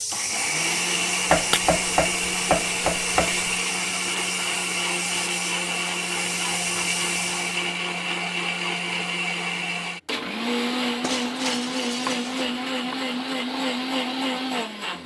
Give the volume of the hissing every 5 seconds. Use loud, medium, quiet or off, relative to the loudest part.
loud, loud, off.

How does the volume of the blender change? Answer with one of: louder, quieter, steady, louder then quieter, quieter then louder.
steady.